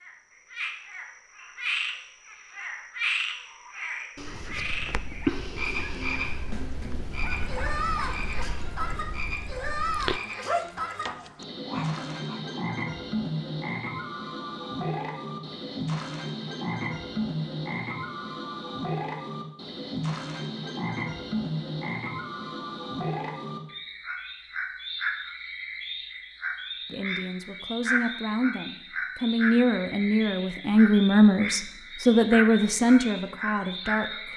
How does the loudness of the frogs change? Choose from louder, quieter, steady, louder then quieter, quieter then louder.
steady.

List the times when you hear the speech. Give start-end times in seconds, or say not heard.
26.9-34.3.